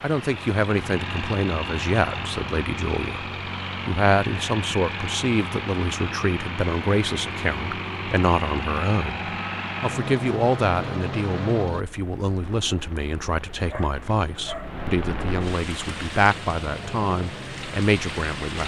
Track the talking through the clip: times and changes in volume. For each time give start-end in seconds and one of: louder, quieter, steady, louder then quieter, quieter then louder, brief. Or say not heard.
0.0-18.6 steady.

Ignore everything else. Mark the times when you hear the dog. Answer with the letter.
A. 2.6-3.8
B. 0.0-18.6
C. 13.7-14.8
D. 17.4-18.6
C.